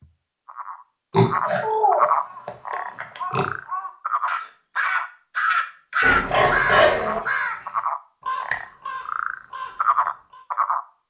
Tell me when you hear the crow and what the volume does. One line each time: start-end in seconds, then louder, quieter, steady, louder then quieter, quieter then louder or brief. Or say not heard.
2.2-10.4 louder then quieter.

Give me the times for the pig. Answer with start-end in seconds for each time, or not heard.
1.1-3.5, 6.0-7.2.